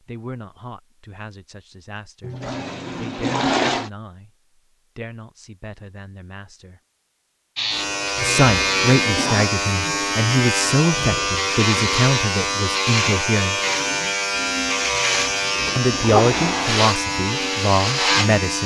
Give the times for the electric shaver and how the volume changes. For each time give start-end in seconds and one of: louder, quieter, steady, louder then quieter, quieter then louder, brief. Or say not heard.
7.5-18.6 steady.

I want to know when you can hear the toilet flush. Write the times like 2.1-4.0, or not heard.
2.2-3.9, 8.2-9.5, 14.9-16.8.